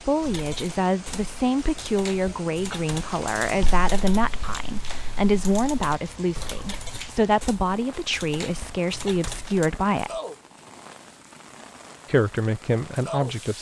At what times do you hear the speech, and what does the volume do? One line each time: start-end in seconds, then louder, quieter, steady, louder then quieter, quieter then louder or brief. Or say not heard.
0.0-10.2 steady
12.1-13.5 brief.